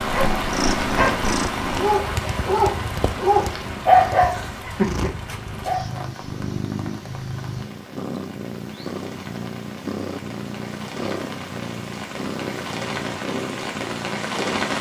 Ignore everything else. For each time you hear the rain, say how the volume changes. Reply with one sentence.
The rain can be heard from 0.0 to 14.7 s, getting quieter then louder.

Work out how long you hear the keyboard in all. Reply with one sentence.
The keyboard can't be heard in this clip.